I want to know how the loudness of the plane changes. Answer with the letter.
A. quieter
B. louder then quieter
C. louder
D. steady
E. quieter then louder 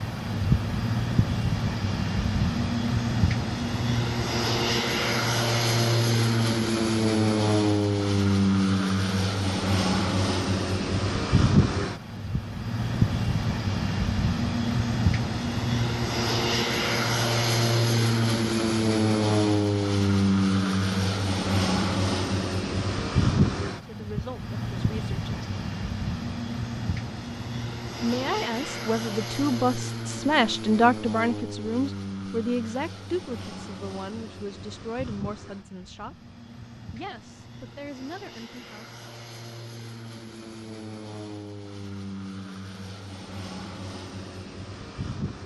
A.